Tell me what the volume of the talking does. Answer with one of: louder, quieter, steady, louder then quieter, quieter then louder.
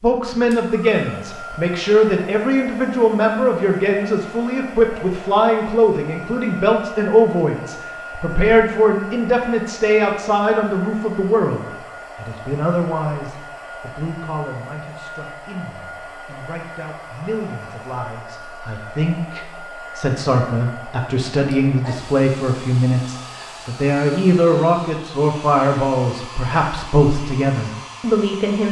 quieter then louder.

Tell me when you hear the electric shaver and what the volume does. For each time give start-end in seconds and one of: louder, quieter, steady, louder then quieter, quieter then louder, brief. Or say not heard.
not heard.